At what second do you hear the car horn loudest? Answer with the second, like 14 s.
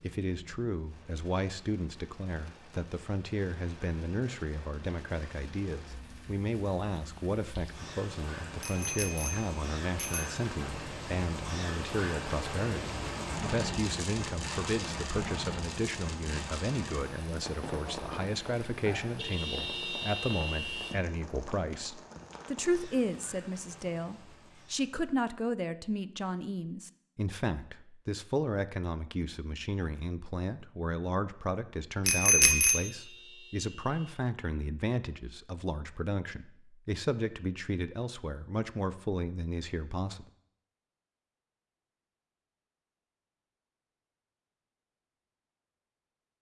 20 s.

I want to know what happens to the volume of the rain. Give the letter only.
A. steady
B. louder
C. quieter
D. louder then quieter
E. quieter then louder
D.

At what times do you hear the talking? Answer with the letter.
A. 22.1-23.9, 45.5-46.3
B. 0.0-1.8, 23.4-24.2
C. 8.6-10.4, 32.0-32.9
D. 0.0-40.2
D.